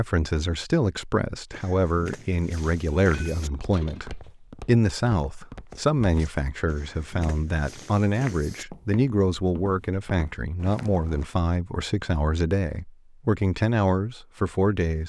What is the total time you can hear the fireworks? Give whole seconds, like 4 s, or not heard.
not heard.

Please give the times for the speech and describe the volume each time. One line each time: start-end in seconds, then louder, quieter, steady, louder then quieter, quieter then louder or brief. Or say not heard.
0.0-15.0 steady.